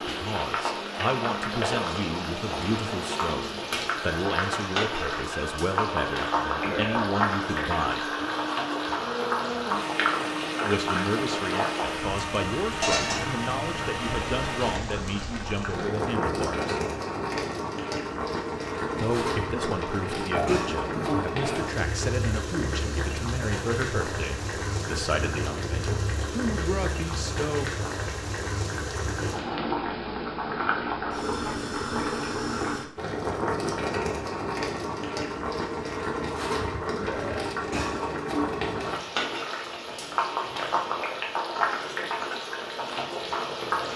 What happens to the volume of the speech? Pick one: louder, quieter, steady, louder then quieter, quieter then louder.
steady.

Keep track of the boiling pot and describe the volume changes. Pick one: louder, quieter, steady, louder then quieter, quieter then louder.
steady.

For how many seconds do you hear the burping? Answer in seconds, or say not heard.
2 s.